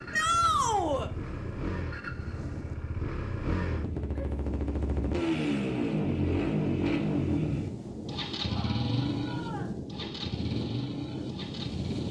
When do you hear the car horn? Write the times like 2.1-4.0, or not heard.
not heard.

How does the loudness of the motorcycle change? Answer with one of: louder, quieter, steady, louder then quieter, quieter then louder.
louder then quieter.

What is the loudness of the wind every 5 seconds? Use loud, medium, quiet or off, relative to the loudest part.
medium, loud, loud.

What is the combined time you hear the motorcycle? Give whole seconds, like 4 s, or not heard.
12 s.